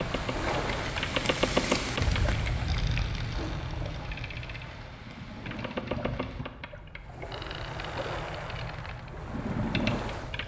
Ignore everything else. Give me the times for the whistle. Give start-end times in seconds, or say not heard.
not heard.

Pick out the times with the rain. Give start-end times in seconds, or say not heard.
0.0-6.5.